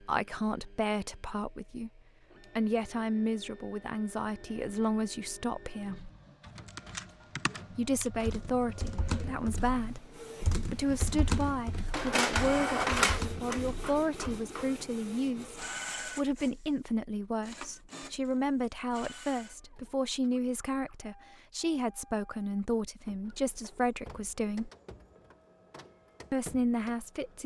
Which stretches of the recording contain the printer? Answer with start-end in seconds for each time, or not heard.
0.0-27.4.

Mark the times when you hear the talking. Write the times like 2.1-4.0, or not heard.
0.0-6.1, 7.8-24.7, 26.3-27.4.